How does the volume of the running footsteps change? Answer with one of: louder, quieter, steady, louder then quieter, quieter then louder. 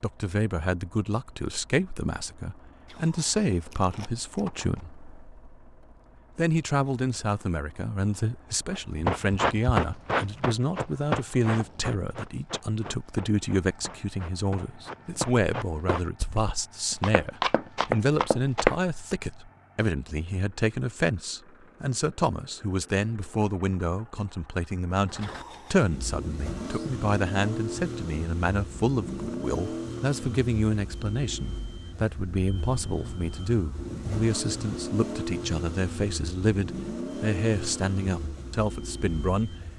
quieter then louder.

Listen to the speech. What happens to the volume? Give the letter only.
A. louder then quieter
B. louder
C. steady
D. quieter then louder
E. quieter
C.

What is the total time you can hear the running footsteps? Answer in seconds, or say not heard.
10 s.